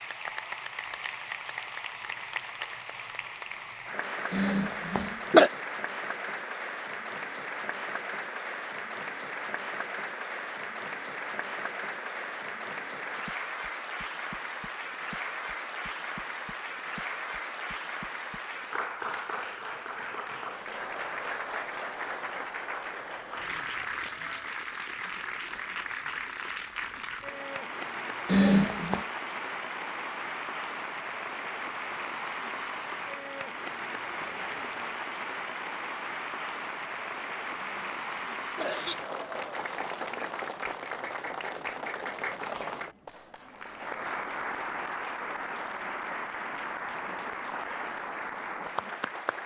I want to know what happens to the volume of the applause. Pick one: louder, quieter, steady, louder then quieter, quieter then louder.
steady.